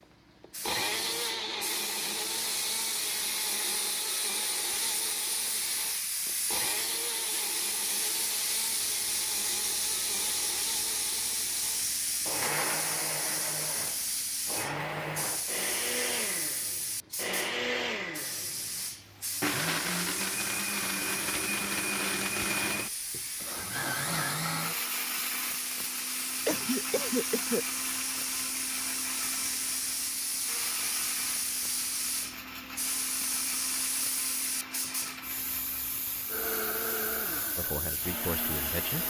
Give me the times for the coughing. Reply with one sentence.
You can hear the coughing from 26.4 to 27.6 s.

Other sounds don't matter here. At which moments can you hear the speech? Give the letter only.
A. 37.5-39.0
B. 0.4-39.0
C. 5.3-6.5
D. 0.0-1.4
A.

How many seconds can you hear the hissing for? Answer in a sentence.
You can hear the hissing for 39 seconds altogether.